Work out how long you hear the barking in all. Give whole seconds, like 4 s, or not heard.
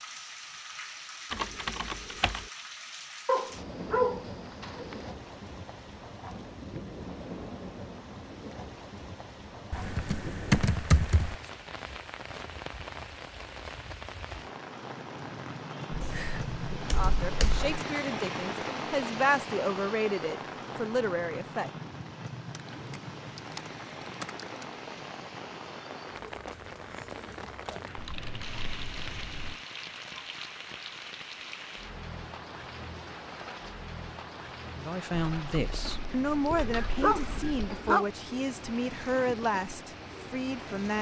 3 s.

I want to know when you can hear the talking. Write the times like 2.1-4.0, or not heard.
16.8-21.7, 34.8-40.9.